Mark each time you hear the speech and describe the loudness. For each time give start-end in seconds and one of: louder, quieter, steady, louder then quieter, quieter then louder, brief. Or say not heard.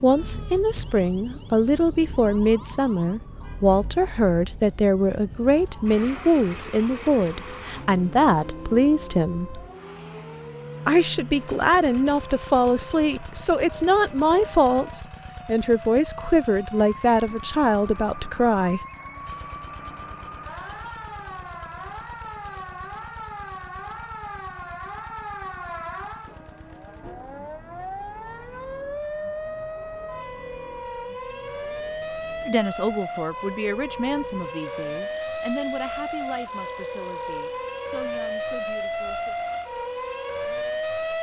0.0-9.6 steady
10.8-18.8 steady
32.5-39.4 quieter.